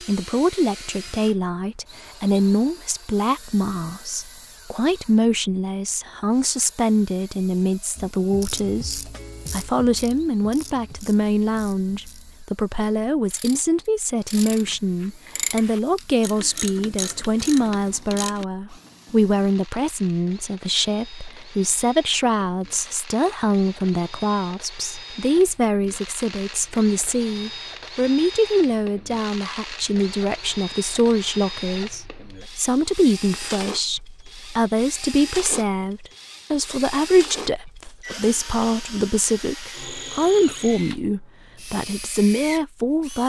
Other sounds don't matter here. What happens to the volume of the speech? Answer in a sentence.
The volume of the speech stays about the same.